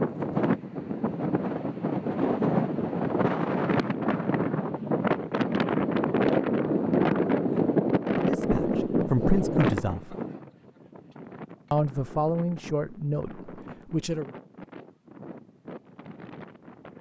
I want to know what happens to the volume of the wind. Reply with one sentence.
The volume of the wind goes down.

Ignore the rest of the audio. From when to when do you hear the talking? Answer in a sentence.
The talking can be heard from 8.2 to 10.2 s and from 11.7 to 14.2 s.